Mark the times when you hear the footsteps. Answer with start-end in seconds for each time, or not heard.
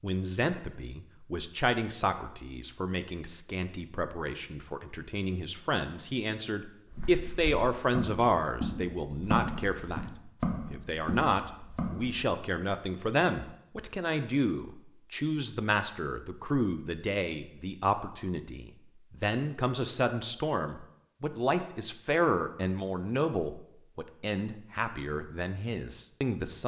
6.8-12.2.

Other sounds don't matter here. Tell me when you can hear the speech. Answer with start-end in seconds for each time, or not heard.
0.0-26.6.